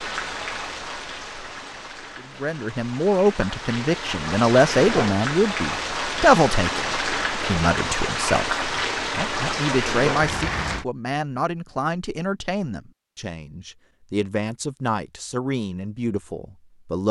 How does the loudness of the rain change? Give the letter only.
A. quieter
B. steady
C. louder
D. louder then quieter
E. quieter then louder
C.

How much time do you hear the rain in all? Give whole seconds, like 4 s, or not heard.
11 s.